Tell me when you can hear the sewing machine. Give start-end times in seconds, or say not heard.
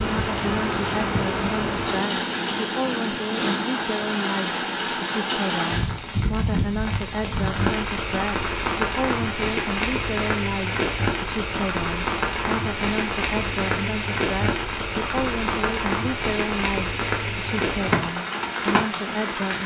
not heard.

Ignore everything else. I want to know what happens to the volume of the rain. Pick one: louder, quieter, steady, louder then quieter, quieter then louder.
steady.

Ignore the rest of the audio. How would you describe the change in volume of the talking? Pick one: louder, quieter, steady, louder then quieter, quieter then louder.
steady.